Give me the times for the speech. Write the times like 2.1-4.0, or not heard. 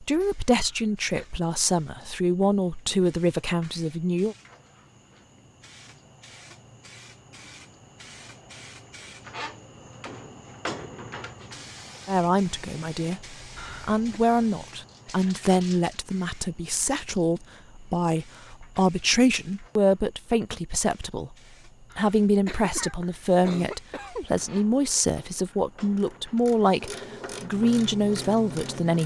0.0-4.3, 12.1-21.4, 21.9-29.0.